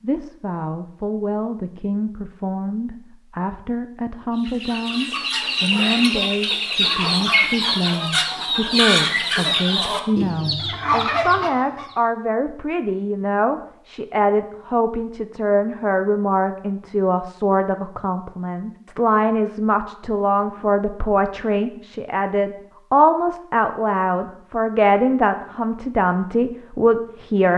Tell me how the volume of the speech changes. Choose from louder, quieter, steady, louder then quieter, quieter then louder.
louder.